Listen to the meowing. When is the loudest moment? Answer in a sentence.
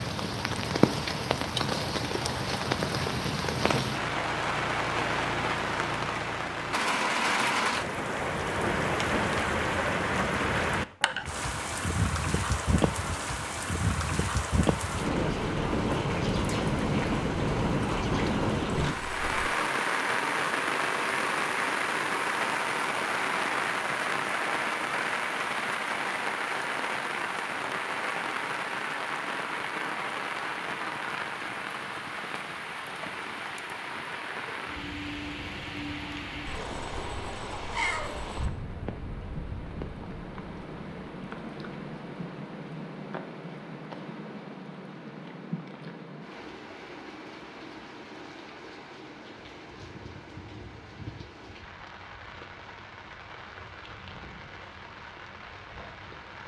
The volume of the meowing peaks at 38 seconds.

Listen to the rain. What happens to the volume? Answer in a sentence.
The loudness of the rain goes down.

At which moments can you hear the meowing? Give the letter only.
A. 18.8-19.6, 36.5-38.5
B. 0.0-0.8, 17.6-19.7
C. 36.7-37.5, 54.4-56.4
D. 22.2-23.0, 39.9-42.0
A.